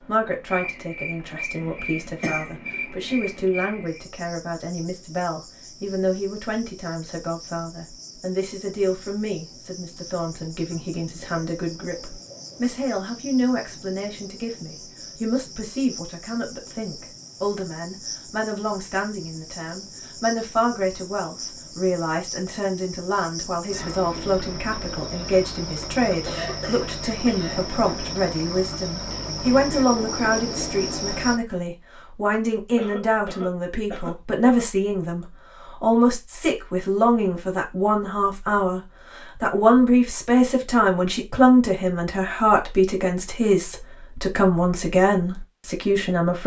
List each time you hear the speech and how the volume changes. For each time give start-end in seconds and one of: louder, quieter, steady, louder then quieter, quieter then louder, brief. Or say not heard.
0.1-46.4 louder.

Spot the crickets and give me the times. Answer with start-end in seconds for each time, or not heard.
0.0-31.4.